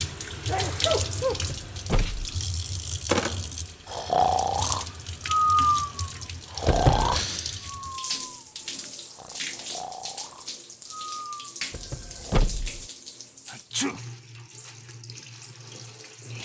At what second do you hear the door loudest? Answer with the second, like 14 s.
7 s.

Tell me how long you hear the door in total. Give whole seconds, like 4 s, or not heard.
3 s.